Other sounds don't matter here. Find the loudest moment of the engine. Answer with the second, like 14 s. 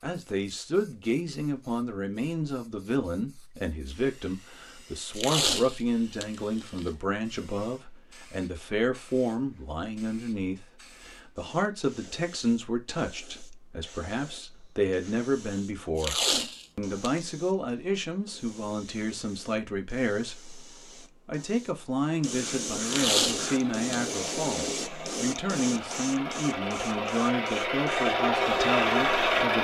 29 s.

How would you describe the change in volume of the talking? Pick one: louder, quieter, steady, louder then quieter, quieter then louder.
steady.